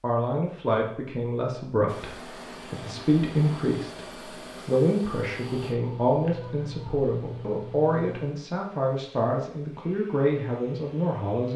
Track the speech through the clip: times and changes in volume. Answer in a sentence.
You can hear the speech from 0.0 to 11.5 s, at a steady volume.